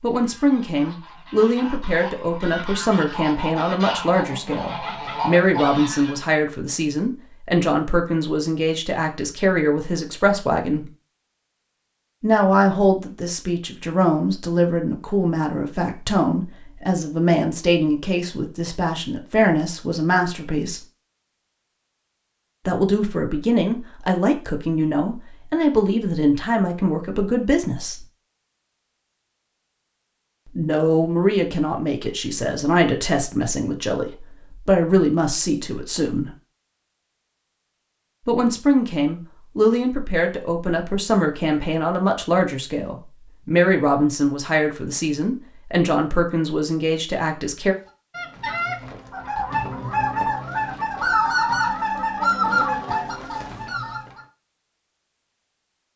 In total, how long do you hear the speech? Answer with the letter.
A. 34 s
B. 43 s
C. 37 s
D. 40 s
D.